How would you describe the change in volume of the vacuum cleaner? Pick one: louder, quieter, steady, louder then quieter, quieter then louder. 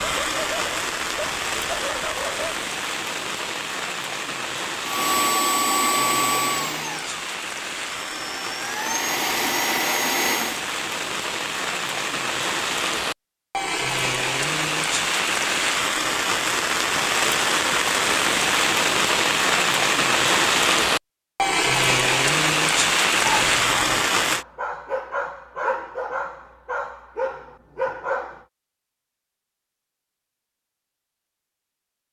quieter then louder.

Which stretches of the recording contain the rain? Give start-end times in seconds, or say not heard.
0.0-24.4.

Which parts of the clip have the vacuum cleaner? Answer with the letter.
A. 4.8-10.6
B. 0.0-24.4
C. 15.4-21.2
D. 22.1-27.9
A.